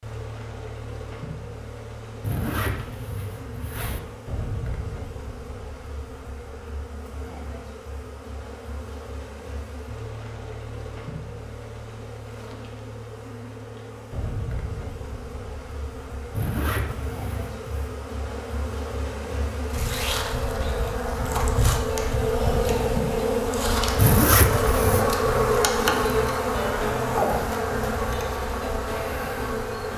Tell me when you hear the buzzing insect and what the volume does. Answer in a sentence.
The buzzing insect can be heard from 0.0 to 29.9 s, getting louder.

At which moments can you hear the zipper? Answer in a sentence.
You can hear the zipper from 2.2 to 4.0 s, from 16.4 to 17.9 s and from 23.9 to 25.1 s.